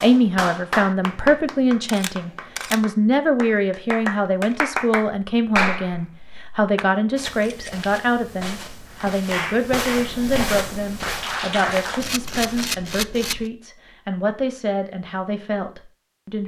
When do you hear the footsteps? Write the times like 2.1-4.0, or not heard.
7.2-12.7.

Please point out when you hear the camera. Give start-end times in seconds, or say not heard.
1.9-2.8, 7.3-7.9, 12.0-13.5.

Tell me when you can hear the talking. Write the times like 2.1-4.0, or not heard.
0.0-16.4.